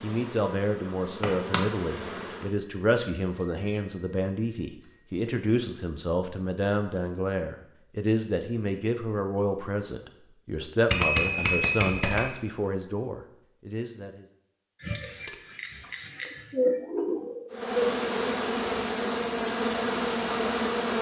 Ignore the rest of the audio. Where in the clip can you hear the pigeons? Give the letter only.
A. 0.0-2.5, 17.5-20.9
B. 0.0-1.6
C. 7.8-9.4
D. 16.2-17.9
D.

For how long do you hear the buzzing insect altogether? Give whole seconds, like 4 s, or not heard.
6 s.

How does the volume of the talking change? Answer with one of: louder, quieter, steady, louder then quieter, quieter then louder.
steady.